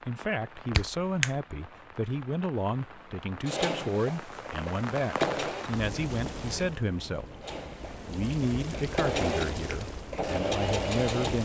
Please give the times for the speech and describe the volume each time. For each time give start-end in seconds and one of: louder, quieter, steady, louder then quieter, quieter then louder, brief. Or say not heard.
0.1-11.3 steady.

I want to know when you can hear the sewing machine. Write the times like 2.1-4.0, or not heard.
3.5-5.8, 7.4-11.3.